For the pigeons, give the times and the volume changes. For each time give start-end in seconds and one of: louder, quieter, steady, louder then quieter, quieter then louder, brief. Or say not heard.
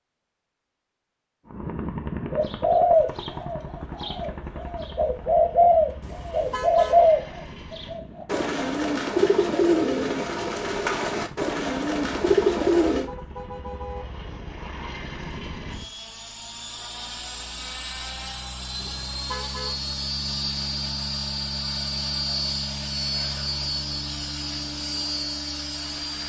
2.3-13.1 steady.